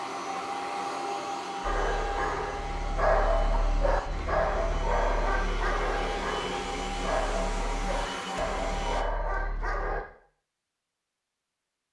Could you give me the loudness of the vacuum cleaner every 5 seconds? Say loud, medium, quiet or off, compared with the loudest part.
loud, loud, off.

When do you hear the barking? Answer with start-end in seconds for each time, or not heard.
1.6-10.1.